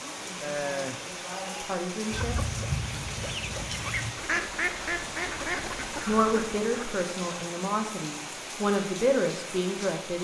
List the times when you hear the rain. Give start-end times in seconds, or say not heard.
0.0-10.1.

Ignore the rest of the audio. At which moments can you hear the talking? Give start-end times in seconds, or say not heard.
0.0-2.4, 6.0-10.1.